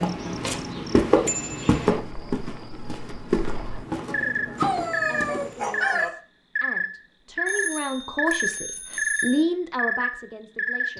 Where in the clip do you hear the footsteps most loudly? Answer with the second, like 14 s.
1 s.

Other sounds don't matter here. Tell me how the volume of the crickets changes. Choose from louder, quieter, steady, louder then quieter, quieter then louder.
louder.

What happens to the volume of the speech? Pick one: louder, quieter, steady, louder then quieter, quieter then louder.
louder.